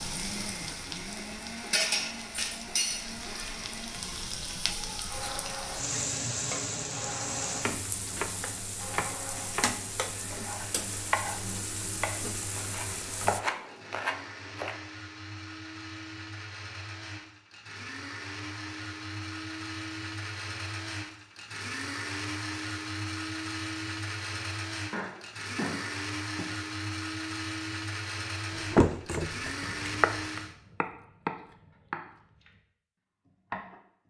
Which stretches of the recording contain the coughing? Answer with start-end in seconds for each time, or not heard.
24.9-26.5.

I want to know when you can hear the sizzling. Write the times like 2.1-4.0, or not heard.
0.0-13.4.